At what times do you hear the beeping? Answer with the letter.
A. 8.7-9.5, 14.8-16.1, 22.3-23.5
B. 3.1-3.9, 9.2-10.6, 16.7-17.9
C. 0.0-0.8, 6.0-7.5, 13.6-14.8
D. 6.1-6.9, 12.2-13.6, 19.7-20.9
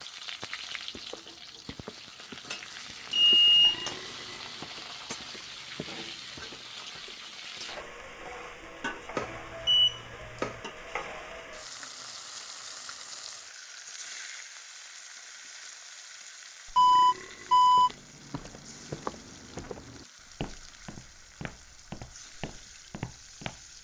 B.